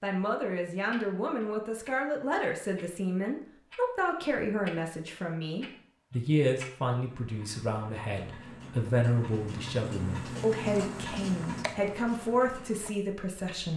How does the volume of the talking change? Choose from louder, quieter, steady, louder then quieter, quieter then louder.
steady.